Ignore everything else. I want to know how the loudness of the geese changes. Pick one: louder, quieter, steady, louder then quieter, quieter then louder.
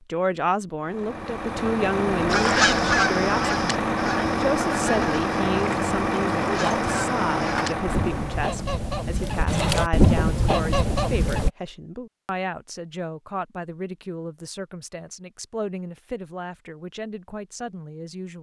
quieter then louder.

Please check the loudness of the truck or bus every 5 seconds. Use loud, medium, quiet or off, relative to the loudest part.
loud, loud, off, off.